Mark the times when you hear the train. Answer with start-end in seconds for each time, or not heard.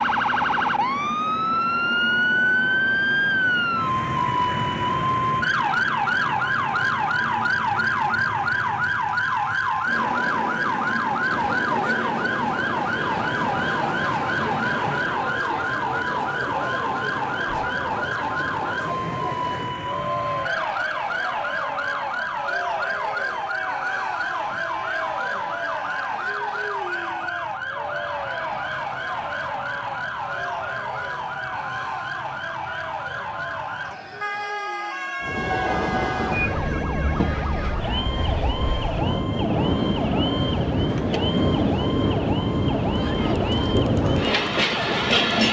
0.0-15.2, 35.2-45.4.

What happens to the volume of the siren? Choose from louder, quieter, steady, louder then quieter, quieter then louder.
quieter.